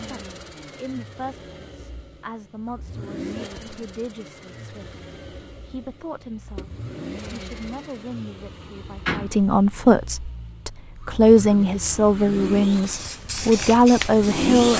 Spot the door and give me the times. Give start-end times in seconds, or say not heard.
9.1-9.8.